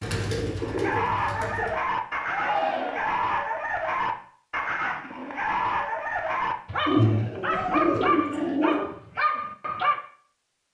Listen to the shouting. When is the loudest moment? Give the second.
3 s.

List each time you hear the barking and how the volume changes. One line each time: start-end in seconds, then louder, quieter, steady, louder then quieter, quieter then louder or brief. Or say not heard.
0.6-10.0 steady.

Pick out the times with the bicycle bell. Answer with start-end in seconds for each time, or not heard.
not heard.